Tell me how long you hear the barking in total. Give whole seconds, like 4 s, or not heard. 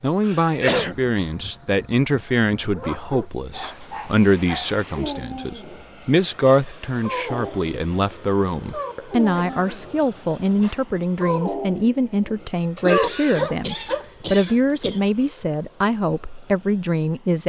11 s.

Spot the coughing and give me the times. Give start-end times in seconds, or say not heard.
0.2-0.9, 9.3-9.8, 12.8-15.1.